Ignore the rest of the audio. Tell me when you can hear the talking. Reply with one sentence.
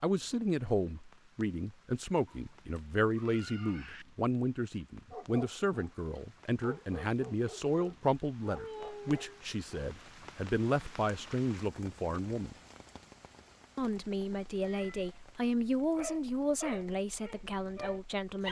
The talking can be heard from 0.0 to 12.6 s and from 13.8 to 18.4 s.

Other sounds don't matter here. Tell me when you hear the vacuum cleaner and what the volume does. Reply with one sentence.
The vacuum cleaner can't be heard in this clip.